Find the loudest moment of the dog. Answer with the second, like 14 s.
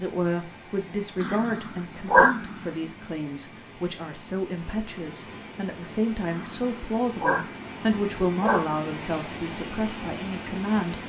2 s.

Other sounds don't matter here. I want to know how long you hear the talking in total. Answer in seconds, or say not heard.
11 s.